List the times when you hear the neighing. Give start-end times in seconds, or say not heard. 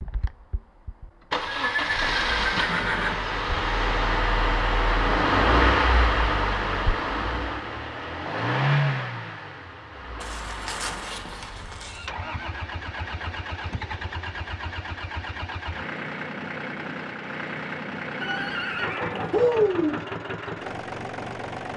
1.4-3.1, 10.2-12.1, 18.2-20.0.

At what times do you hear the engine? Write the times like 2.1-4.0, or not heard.
0.0-21.7.